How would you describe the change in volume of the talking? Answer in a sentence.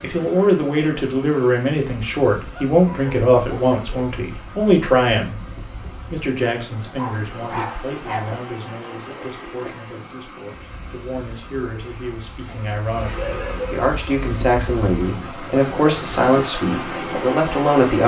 The volume of the talking goes down, then up.